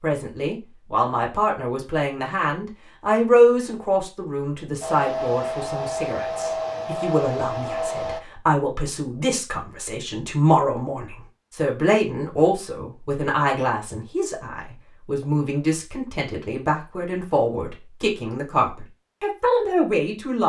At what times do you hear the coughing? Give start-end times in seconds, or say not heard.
not heard.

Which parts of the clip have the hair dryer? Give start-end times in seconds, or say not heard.
4.8-8.2.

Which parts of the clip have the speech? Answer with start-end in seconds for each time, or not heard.
0.0-20.4.